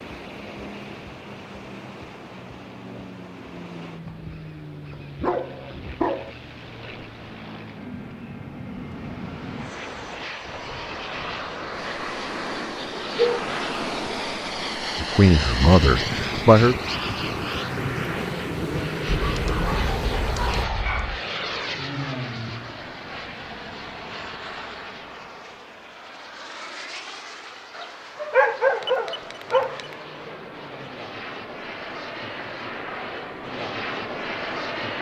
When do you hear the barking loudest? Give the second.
29 s.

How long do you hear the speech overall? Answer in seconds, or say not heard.
2 s.